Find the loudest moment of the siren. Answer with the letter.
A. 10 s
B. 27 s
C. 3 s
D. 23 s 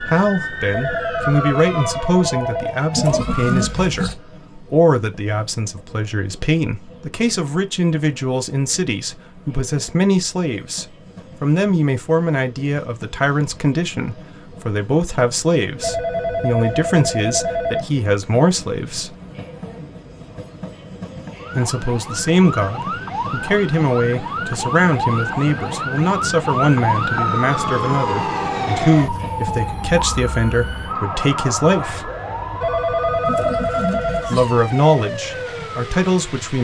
B.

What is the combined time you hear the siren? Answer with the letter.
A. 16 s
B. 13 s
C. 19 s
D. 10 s
C.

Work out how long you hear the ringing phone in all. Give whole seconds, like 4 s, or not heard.
6 s.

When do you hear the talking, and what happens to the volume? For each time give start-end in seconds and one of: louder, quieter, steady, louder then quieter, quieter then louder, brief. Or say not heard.
0.0-19.1 steady
21.6-32.1 steady
34.2-36.6 brief.